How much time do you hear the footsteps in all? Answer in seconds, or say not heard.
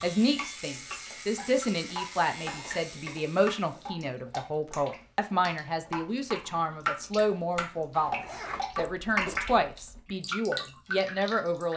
not heard.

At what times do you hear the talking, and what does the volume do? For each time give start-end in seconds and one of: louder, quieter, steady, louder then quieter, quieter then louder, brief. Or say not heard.
0.0-11.7 steady.